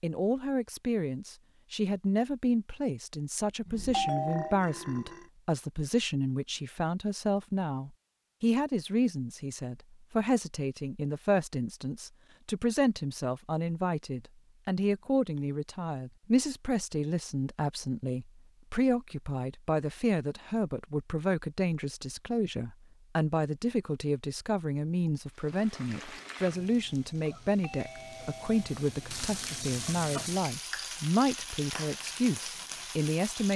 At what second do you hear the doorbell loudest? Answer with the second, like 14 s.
4 s.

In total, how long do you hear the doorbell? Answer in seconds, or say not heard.
2 s.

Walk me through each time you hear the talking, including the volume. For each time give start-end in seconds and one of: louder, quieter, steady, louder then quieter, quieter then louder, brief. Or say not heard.
0.0-33.5 steady.